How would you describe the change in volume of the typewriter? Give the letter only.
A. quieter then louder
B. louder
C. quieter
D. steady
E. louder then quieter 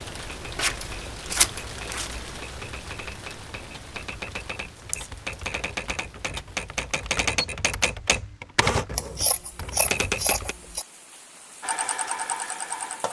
B.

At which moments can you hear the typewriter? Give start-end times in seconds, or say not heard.
0.2-10.6.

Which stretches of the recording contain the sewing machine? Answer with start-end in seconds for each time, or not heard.
11.6-13.0.